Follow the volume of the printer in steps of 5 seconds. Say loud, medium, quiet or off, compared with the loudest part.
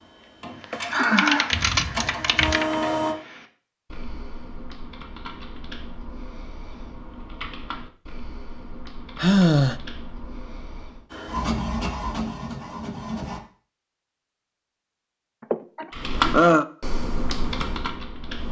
loud, off, loud, off.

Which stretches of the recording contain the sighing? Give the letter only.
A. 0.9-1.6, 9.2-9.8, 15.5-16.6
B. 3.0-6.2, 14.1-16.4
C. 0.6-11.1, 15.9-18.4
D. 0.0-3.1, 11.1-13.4
A.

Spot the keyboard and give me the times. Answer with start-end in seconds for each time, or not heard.
0.6-11.1, 15.9-18.4.